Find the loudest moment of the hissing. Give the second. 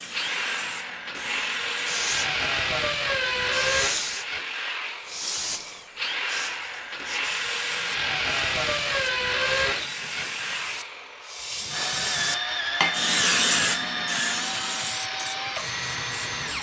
13 s.